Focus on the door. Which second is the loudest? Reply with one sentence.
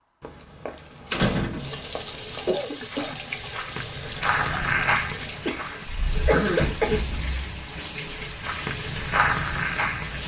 The volume of the door peaks at 1 second.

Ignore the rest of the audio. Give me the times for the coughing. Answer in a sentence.
The coughing can be heard from 1.5 to 3.1 s and from 5.5 to 7.0 s.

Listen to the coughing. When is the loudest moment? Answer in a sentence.
The volume of the coughing peaks at 6 seconds.